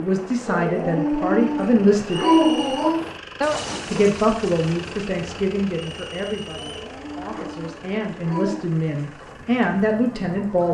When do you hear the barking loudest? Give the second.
2 s.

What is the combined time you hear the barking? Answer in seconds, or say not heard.
5 s.